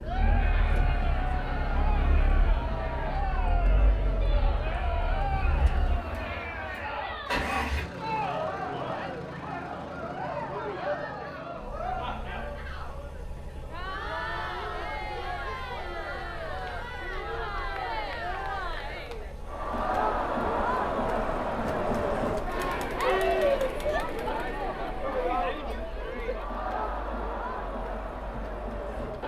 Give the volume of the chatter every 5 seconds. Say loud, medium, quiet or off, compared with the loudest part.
medium, medium, medium, medium, loud, medium.